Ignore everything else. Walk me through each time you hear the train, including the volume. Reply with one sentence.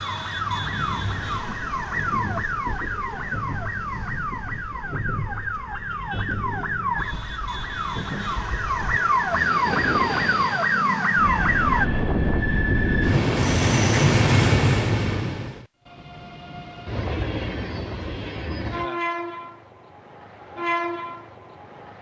The train can be heard from 0.0 to 21.9 s, getting louder then quieter.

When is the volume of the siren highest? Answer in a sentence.
The volume of the siren peaks at 11 seconds.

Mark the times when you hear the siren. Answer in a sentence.
You can hear the siren from 0.0 to 11.9 s.